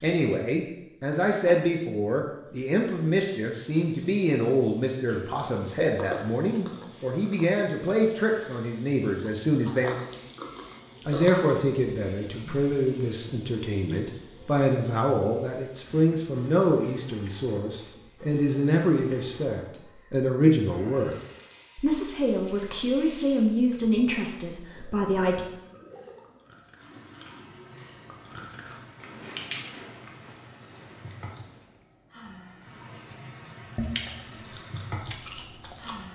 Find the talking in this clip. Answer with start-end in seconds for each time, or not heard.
0.0-9.9, 11.1-21.1, 21.8-25.4.